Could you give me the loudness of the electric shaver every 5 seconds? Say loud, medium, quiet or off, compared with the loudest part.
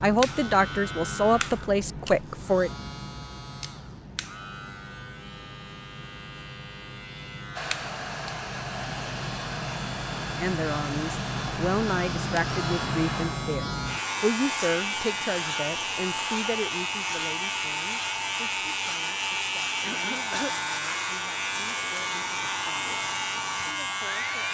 medium, medium, loud, loud, loud.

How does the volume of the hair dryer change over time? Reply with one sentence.
The loudness of the hair dryer stays about the same.